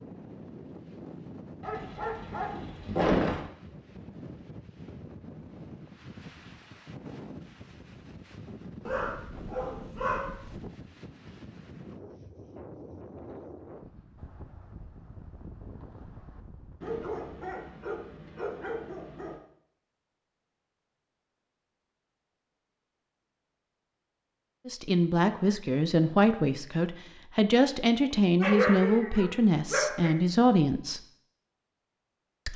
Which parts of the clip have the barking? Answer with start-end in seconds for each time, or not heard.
1.6-3.5, 8.8-10.7, 16.8-19.4, 28.1-30.1.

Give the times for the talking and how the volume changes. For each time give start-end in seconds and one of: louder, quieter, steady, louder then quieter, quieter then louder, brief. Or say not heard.
24.6-31.0 steady.